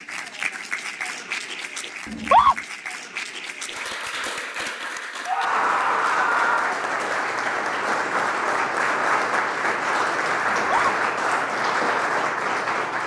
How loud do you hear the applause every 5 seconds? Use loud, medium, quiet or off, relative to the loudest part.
medium, loud, loud.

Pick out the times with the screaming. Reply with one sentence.
The screaming can be heard from 2.0 to 2.5 s, from 5.2 to 6.8 s and from 10.4 to 10.9 s.